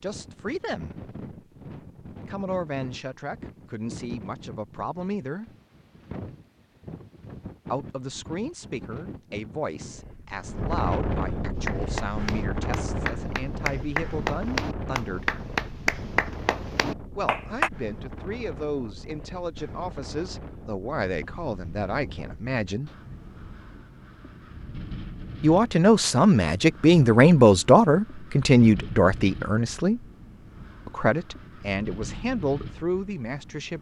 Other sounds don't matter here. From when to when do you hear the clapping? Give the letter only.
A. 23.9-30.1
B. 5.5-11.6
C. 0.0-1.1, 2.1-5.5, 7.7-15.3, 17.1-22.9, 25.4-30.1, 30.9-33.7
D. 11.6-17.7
D.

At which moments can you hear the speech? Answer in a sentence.
You can hear the speech from 0.0 to 1.1 s, from 2.1 to 5.5 s, from 7.7 to 15.3 s, from 17.1 to 22.9 s, from 25.4 to 30.1 s and from 30.9 to 33.7 s.